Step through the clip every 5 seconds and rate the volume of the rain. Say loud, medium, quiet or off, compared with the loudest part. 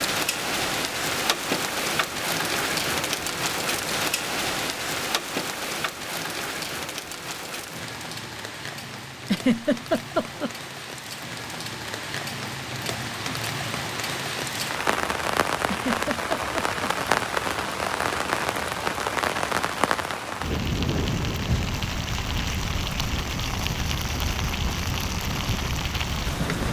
loud, medium, medium, loud, loud, loud.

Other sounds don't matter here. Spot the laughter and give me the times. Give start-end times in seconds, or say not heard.
9.2-10.5, 15.7-16.6.